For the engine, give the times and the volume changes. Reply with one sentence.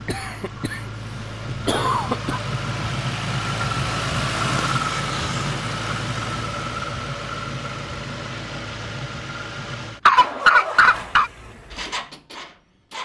You can hear the engine from 0.0 to 13.0 s, getting louder then quieter.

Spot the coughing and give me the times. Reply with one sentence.
The coughing can be heard from 0.1 to 0.8 s, from 1.6 to 2.4 s, from 4.8 to 5.5 s and from 10.1 to 11.3 s.